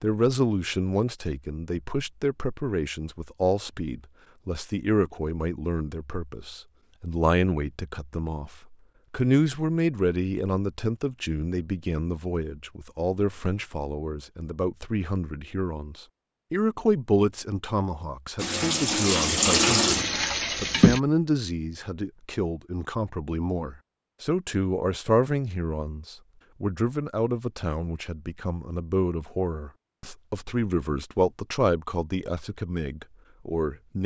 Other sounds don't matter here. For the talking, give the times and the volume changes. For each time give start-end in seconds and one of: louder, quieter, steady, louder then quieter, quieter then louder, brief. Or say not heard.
0.0-34.0 steady.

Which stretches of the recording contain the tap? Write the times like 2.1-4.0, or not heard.
18.4-21.0.